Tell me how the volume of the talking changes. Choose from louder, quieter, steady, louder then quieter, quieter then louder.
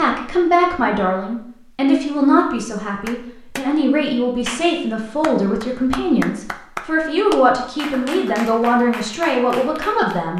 steady.